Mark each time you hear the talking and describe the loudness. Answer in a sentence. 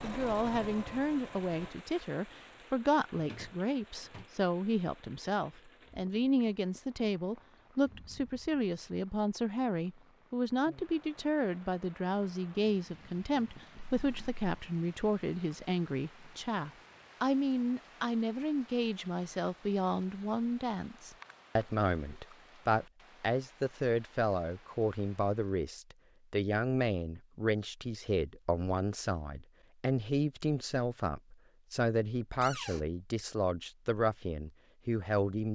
You can hear the talking from 0.0 to 35.5 s, at a steady volume.